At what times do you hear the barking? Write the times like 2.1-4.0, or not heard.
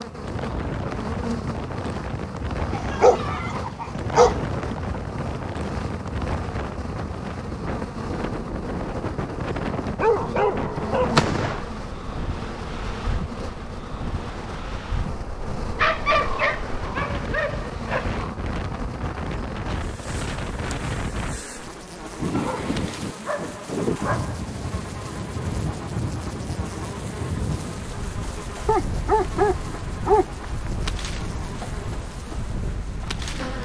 2.7-4.4, 9.9-11.7, 15.8-18.2, 22.4-24.4, 28.6-30.2.